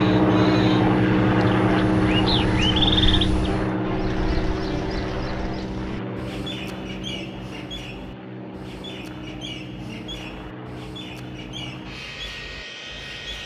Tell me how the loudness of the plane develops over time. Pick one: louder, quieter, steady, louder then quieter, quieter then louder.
quieter.